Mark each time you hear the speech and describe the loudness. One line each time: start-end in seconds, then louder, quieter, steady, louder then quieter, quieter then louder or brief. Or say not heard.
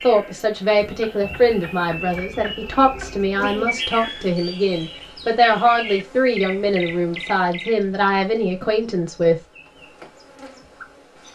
0.0-9.4 steady.